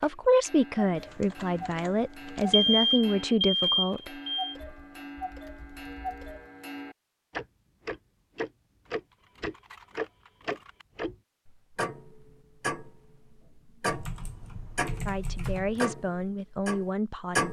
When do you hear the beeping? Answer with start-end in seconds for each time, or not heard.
2.5-4.5.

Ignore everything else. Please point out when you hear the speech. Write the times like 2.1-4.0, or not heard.
0.0-4.1, 15.1-17.4.